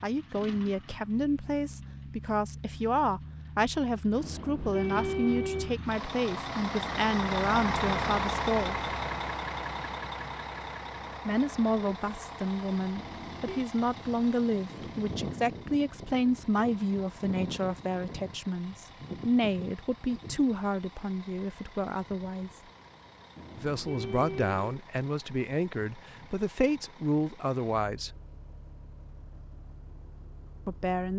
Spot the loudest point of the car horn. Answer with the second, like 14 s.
5 s.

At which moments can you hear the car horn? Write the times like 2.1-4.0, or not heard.
4.2-5.7, 12.9-13.7, 23.4-24.8.